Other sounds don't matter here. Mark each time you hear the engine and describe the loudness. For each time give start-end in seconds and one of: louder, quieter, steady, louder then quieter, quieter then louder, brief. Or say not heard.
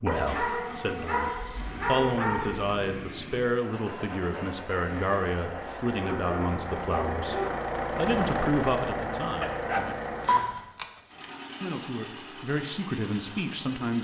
0.1-13.9 louder then quieter.